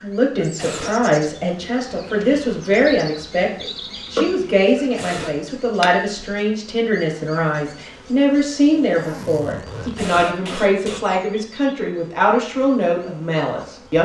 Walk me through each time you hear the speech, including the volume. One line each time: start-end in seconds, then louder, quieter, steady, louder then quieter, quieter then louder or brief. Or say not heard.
0.0-13.9 steady.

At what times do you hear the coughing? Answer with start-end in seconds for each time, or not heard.
0.3-0.9, 4.8-5.4, 9.8-11.2.